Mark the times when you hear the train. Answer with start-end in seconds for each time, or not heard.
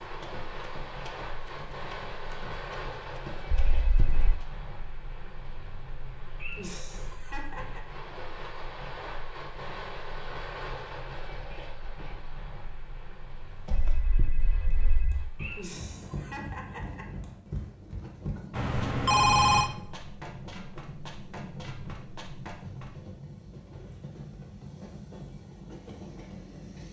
0.0-26.8.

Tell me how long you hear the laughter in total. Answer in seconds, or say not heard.
3 s.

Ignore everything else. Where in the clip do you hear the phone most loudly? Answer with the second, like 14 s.
19 s.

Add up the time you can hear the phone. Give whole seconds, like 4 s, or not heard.
3 s.